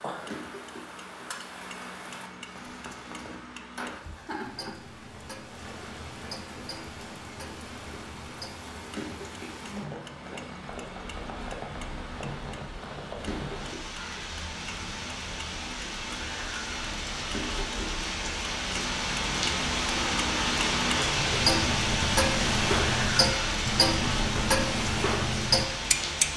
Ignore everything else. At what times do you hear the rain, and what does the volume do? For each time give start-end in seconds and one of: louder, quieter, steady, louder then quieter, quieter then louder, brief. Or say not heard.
0.0-26.3 louder.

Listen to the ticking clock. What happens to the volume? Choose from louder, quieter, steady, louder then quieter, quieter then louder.
louder.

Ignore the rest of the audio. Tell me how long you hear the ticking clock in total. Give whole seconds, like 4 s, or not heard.
26 s.